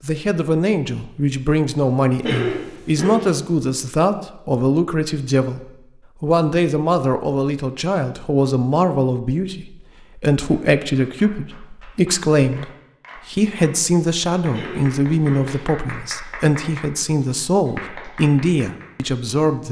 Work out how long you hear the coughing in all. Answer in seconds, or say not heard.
2 s.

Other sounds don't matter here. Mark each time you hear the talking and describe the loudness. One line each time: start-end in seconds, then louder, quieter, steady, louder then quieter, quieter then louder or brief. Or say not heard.
0.0-5.6 steady
6.2-19.6 steady.